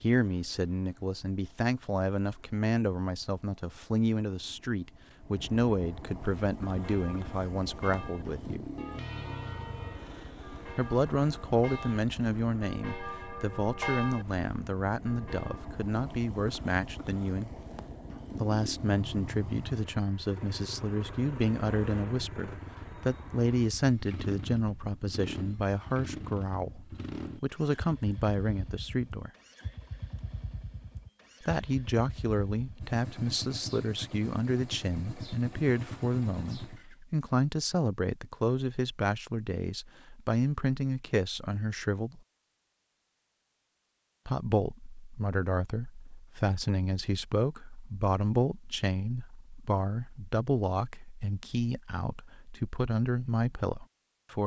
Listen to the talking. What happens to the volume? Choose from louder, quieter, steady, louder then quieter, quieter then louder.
steady.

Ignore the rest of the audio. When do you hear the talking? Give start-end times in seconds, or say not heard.
0.0-8.7, 10.8-17.5, 18.4-29.3, 31.4-42.2, 44.2-54.4.